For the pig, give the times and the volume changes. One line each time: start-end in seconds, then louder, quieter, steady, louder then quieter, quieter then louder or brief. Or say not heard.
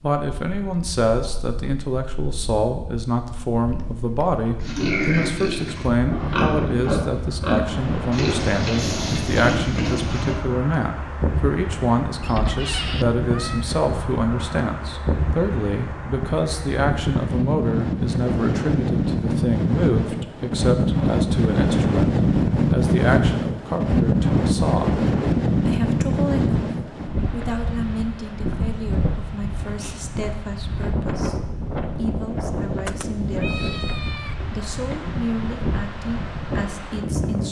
4.6-10.4 steady.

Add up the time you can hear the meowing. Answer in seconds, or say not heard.
3 s.